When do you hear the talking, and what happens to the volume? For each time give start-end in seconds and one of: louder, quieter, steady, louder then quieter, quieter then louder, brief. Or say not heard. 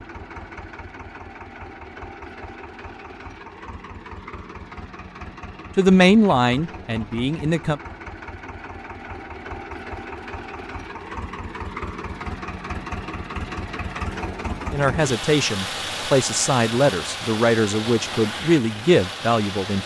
5.8-7.8 brief
14.7-19.8 steady.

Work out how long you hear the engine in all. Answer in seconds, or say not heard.
20 s.